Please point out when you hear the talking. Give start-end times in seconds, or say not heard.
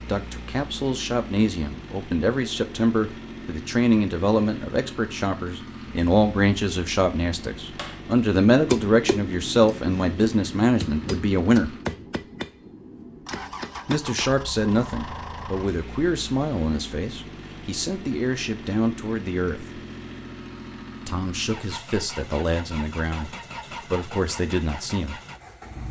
0.0-11.8, 13.8-19.8, 21.1-25.2.